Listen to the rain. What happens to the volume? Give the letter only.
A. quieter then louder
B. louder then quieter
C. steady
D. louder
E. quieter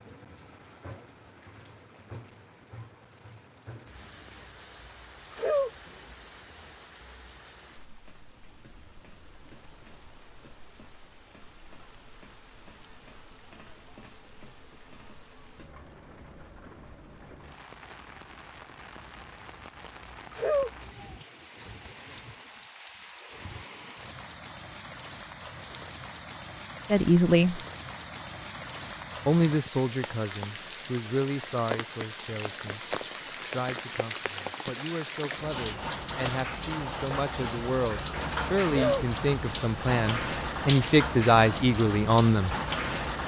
D.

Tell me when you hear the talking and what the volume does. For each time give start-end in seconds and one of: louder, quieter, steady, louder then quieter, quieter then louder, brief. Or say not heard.
26.9-27.6 brief
29.2-42.5 quieter then louder.